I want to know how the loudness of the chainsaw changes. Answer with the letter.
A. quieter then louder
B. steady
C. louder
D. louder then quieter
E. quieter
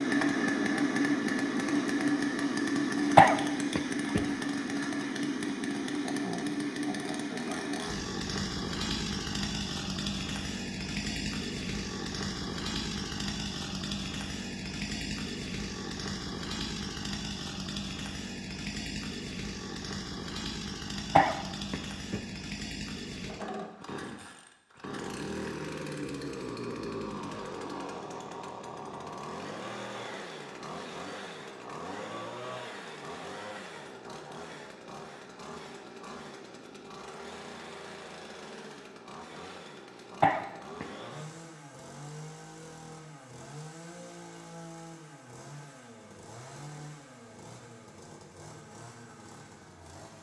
E.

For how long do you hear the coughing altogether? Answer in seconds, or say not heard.
3 s.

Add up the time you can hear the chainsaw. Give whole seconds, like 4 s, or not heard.
50 s.